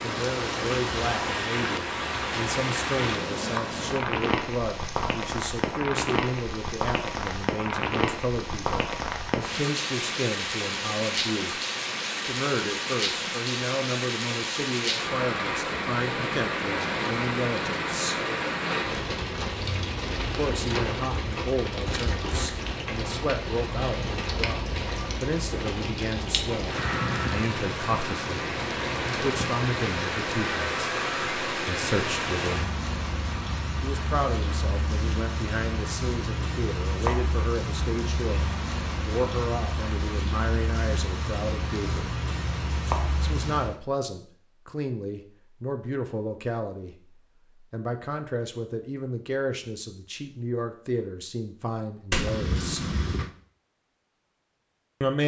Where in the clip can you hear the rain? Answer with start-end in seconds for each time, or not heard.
0.0-43.8.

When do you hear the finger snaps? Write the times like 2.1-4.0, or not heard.
52.1-53.3.